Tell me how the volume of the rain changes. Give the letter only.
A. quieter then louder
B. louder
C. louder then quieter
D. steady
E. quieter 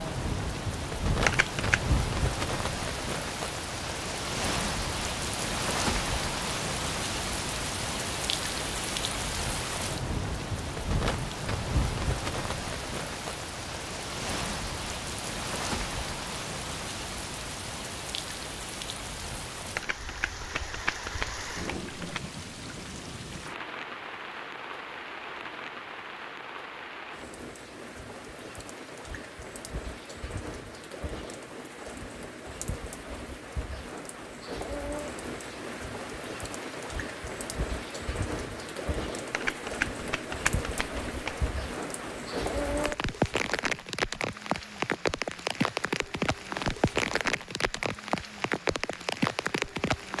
A.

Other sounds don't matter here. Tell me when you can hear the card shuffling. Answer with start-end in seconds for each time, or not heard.
1.2-1.8, 19.8-22.2, 39.3-41.4.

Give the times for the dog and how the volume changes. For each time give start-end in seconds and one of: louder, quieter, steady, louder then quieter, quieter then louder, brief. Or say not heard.
not heard.